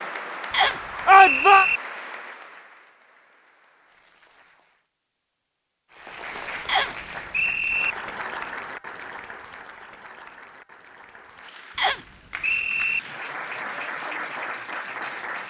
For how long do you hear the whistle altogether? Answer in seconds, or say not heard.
4 s.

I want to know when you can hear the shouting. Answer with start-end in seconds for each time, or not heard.
1.1-1.6.